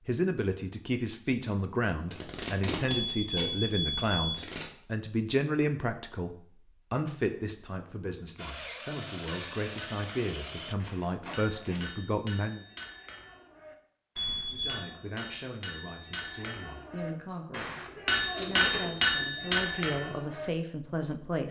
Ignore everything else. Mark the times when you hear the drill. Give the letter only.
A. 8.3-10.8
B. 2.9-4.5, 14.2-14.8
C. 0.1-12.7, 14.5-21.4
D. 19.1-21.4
A.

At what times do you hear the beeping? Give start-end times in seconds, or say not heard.
2.9-4.5, 14.2-14.8.